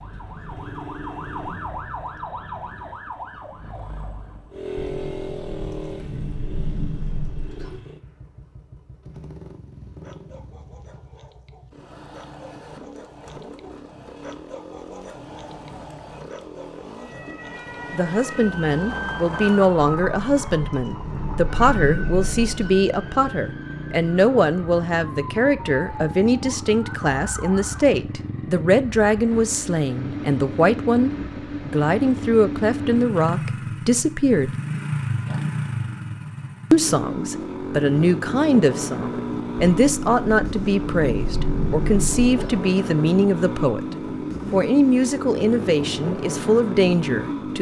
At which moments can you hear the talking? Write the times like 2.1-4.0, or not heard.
17.9-34.5, 36.7-43.9, 44.5-47.5.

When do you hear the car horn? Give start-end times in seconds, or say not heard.
not heard.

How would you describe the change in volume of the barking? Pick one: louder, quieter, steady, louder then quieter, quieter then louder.
louder.